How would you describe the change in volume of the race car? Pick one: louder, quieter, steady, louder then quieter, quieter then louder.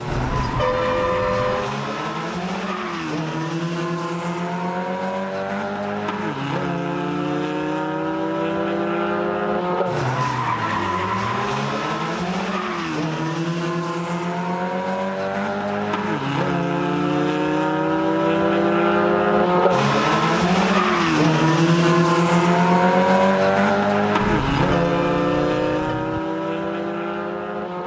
louder.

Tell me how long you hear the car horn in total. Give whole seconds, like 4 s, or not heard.
4 s.